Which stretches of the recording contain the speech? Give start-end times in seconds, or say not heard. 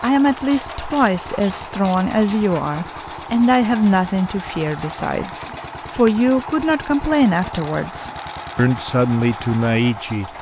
0.0-10.3.